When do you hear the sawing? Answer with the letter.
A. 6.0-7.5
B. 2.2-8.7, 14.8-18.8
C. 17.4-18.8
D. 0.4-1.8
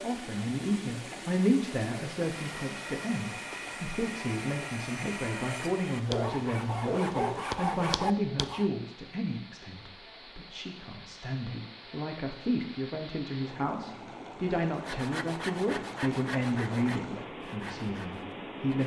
B.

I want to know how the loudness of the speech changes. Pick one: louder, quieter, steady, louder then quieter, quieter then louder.
steady.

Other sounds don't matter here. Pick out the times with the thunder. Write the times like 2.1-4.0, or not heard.
not heard.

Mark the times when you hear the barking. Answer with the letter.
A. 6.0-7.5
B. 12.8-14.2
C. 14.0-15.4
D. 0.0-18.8
A.